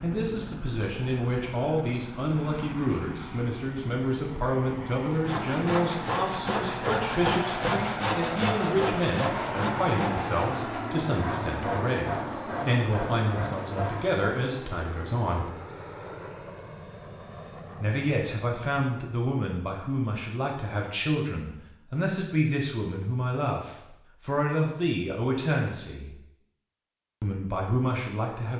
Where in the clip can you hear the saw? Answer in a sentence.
The saw can be heard from 5.0 to 14.6 s.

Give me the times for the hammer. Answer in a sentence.
You can't hear the hammer here.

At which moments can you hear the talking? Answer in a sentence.
You can hear the talking from 0.0 to 15.5 s, from 17.8 to 26.1 s and from 27.2 to 28.5 s.